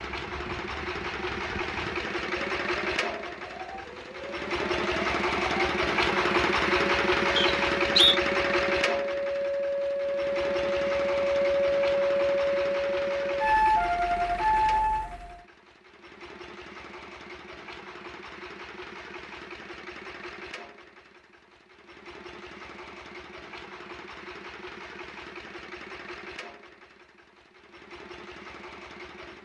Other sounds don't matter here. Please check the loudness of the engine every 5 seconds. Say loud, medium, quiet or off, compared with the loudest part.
medium, loud, medium, quiet, quiet, quiet.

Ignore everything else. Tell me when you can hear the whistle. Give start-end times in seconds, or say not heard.
7.3-8.2.